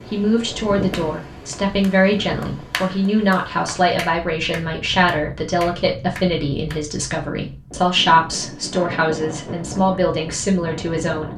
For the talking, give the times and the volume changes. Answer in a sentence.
The talking can be heard from 0.1 to 11.3 s, at a steady volume.